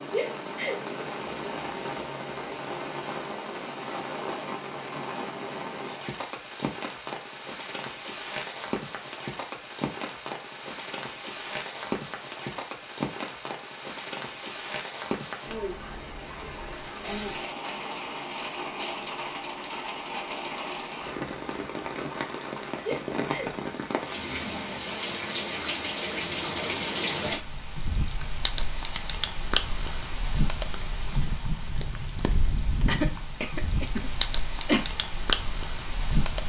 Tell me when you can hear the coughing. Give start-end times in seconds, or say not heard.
32.9-34.9.